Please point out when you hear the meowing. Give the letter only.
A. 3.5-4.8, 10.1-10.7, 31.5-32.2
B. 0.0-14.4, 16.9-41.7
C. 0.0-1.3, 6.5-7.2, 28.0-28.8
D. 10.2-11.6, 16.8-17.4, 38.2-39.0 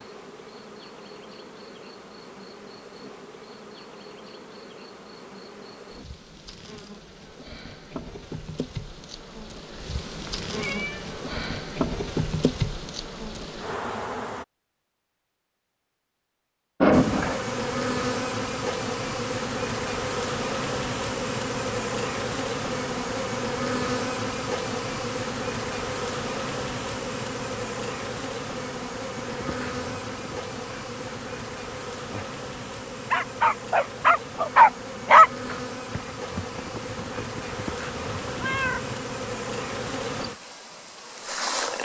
D.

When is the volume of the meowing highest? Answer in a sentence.
The volume of the meowing peaks at 17 seconds.